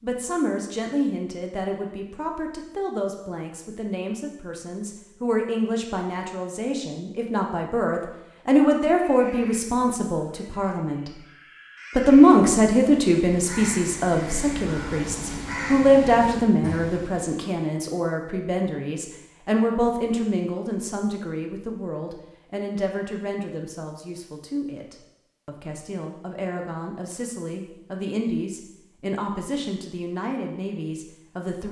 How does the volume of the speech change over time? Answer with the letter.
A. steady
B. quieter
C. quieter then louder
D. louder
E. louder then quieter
E.